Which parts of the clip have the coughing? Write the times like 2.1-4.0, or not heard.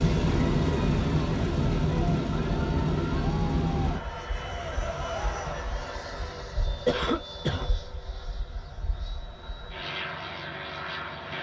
6.8-7.7.